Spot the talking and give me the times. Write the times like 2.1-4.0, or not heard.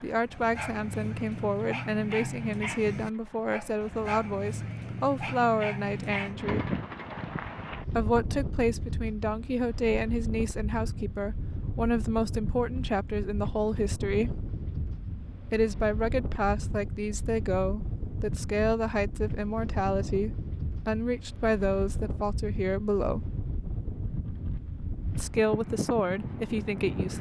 0.0-6.7, 8.0-14.4, 15.5-23.2, 25.1-27.1.